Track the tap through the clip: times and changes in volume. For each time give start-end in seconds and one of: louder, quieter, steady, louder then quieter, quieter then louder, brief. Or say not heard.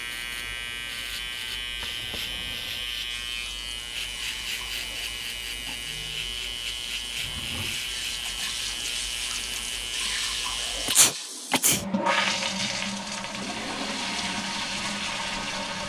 3.0-15.8 louder.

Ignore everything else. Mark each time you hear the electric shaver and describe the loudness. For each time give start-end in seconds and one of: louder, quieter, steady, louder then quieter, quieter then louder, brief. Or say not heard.
0.0-11.0 steady.